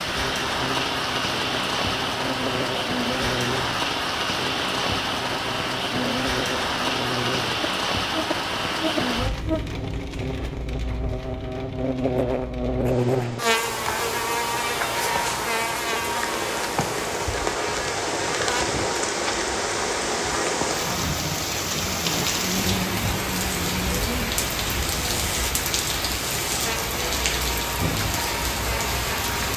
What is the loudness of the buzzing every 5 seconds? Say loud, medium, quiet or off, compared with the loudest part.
medium, medium, loud, loud, medium, medium.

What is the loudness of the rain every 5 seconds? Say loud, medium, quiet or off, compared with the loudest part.
loud, loud, medium, loud, loud, loud.